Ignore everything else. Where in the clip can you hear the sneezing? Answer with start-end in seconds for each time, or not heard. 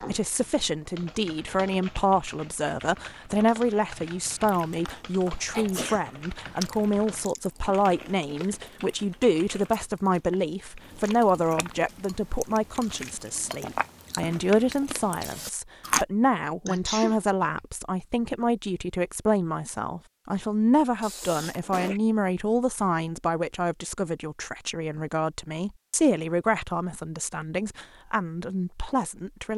5.5-6.6, 16.6-17.6, 21.0-22.0.